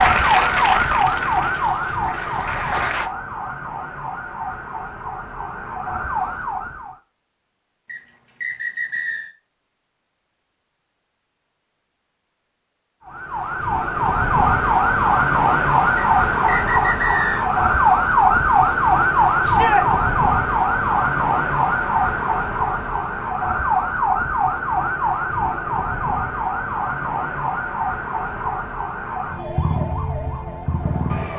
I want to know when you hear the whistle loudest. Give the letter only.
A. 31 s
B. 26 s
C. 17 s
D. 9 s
C.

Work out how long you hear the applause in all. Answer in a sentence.
The applause can be heard for 3 seconds in total.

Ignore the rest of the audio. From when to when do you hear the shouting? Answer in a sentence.
You can hear the shouting from 19.4 to 19.9 s.